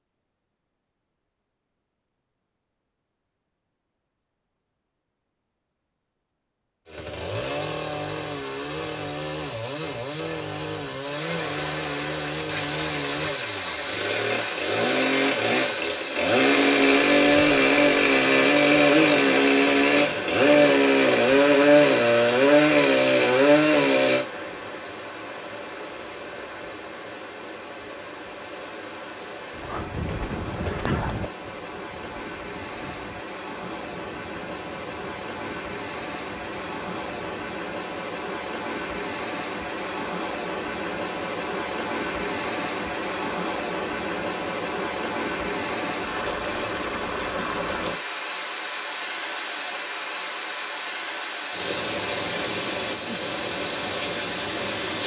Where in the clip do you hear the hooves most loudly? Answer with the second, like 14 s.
31 s.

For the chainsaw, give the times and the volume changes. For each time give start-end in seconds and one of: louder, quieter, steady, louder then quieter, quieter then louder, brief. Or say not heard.
6.8-24.2 louder.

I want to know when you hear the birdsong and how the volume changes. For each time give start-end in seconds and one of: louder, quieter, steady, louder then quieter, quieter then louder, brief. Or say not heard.
not heard.